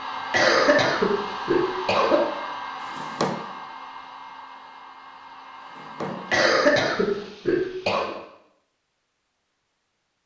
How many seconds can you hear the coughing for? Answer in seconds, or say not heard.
4 s.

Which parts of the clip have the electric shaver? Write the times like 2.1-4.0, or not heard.
not heard.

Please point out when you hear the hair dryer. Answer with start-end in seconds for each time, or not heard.
0.0-6.5.